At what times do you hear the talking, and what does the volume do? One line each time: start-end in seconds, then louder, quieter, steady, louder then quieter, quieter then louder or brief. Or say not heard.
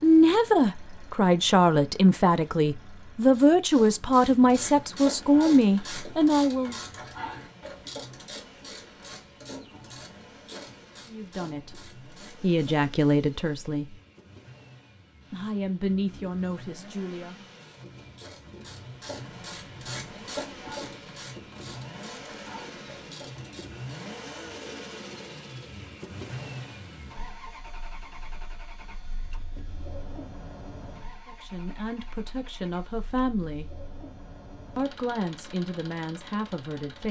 0.0-6.8 steady
11.1-13.9 brief
15.3-17.4 brief
31.2-33.6 brief
34.8-37.0 brief.